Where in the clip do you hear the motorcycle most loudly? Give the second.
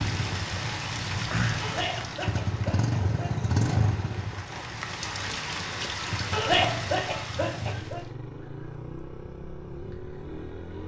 3 s.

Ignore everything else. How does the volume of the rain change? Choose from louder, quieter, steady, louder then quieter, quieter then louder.
quieter then louder.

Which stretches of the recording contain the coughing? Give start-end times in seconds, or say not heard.
1.6-3.5, 6.3-8.0.